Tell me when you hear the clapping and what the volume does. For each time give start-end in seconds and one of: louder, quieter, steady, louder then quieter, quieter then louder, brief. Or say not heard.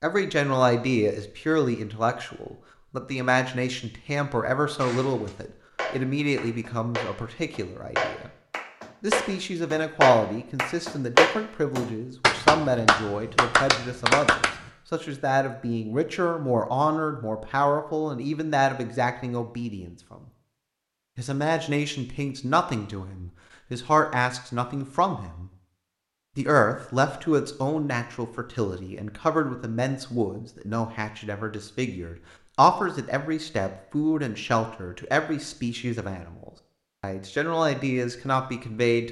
4.8-14.5 louder.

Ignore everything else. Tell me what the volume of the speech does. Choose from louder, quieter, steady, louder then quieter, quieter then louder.
steady.